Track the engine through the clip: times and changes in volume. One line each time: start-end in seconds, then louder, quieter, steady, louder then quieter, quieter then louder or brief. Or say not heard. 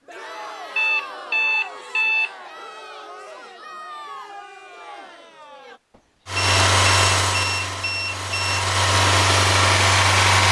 6.2-10.4 quieter then louder.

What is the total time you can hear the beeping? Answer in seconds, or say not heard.
4 s.